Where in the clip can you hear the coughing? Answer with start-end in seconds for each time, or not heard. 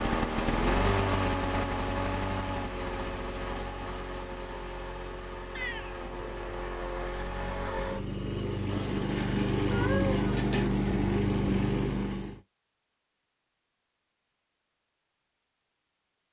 not heard.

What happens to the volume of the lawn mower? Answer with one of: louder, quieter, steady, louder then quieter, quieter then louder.
quieter then louder.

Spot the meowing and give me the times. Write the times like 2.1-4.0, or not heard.
5.5-6.5, 8.7-10.7.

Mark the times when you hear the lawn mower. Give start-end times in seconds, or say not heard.
0.0-12.4.